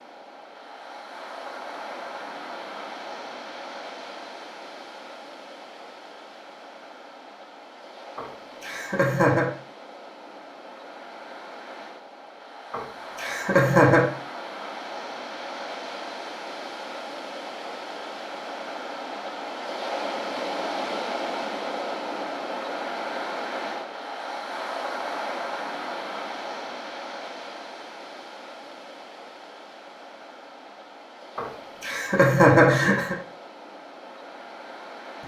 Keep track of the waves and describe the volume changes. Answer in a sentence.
The loudness of the waves goes up, then down.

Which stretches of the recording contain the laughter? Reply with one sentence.
You can hear the laughter from 8.2 to 9.4 s, from 12.7 to 14.1 s and from 31.4 to 33.1 s.